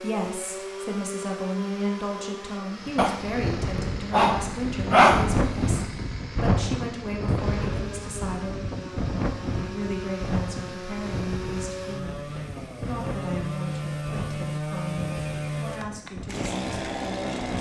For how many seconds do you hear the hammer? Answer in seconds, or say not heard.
not heard.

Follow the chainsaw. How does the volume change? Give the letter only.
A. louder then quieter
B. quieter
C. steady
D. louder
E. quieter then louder
E.